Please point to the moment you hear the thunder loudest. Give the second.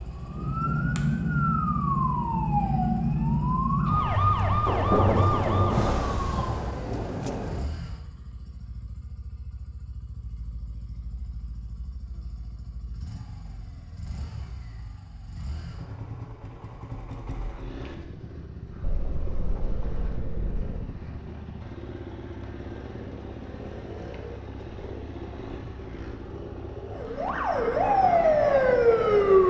5 s.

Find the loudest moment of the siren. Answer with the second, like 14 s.
29 s.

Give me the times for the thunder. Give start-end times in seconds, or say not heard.
4.7-7.7, 18.8-20.9.